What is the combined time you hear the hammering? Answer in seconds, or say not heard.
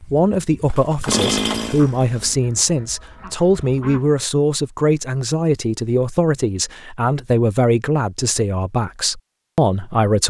not heard.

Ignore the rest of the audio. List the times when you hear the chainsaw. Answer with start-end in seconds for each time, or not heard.
0.0-2.4.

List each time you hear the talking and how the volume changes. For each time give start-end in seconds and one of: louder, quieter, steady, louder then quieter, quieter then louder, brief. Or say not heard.
0.0-10.2 steady.